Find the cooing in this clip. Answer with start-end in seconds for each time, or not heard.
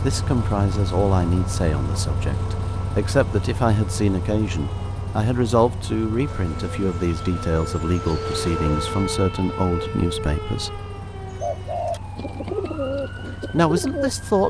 6.2-9.1, 11.4-14.1.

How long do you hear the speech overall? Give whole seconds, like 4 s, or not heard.
12 s.